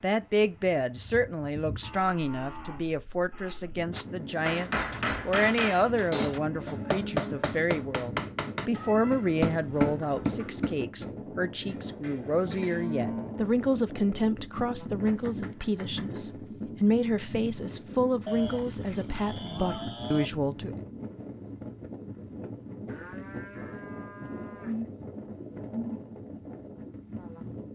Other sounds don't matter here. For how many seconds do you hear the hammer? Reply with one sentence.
You can hear the hammer for 7 seconds altogether.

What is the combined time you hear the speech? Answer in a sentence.
The speech can be heard for 21 seconds in total.